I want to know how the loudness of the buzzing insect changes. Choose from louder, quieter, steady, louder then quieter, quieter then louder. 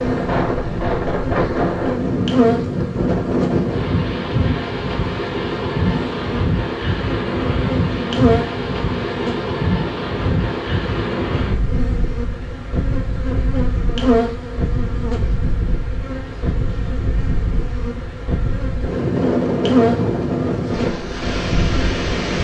quieter then louder.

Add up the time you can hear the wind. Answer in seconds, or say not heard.
22 s.